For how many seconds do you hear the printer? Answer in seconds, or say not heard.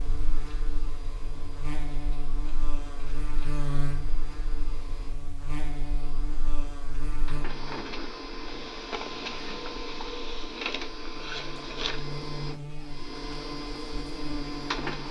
15 s.